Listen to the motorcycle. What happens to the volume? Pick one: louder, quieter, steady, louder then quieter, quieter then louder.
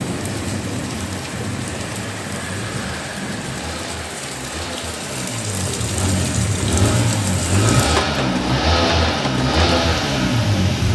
louder.